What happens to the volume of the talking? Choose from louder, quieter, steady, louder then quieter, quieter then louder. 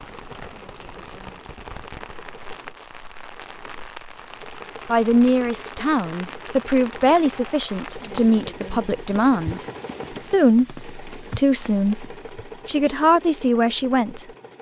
steady.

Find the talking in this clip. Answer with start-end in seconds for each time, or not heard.
4.9-14.2.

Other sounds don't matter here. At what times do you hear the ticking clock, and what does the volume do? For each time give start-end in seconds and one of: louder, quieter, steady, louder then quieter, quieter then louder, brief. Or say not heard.
not heard.